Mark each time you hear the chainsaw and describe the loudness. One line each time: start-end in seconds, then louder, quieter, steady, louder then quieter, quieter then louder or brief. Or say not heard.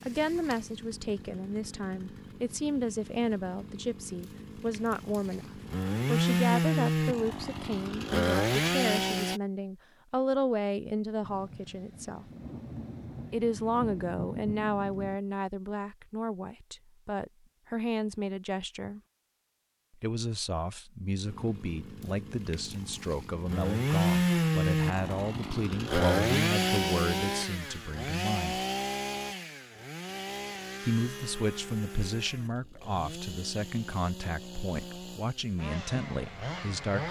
0.0-9.4 louder
21.2-37.0 quieter.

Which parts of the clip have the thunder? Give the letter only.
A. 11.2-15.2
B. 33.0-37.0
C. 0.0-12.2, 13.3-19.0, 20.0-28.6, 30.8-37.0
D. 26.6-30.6
A.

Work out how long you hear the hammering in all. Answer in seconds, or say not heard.
not heard.